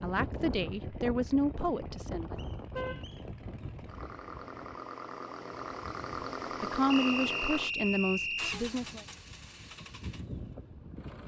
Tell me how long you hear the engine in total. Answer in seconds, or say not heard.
11 s.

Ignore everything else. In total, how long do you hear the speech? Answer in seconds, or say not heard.
5 s.